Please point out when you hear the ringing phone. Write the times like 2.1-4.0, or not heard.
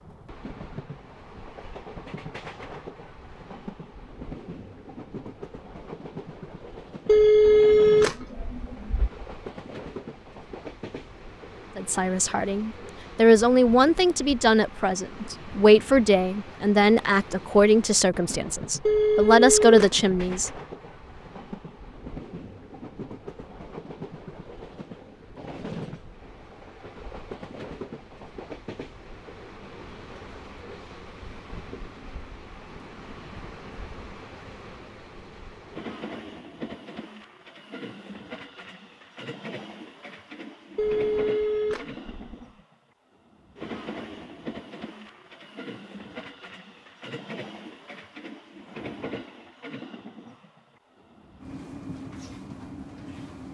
7.0-9.1, 18.9-20.5, 40.8-42.5.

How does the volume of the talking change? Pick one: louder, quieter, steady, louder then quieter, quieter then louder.
steady.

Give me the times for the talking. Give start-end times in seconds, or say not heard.
11.8-20.5.